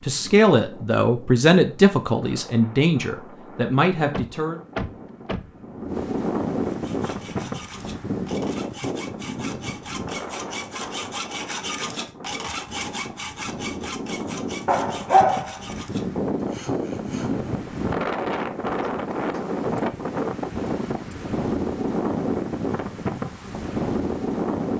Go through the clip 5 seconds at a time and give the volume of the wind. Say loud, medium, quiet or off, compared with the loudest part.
quiet, loud, medium, loud, loud.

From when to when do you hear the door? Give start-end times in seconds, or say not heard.
4.1-5.5.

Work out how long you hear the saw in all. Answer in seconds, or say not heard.
11 s.